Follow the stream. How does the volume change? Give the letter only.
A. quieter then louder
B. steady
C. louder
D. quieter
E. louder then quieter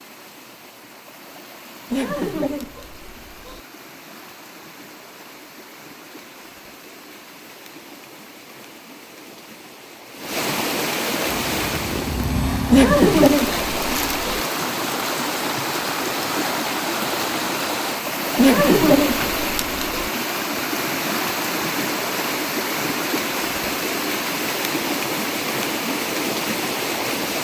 C.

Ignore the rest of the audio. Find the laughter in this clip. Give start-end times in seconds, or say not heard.
1.9-3.6, 12.7-14.4, 18.4-20.1.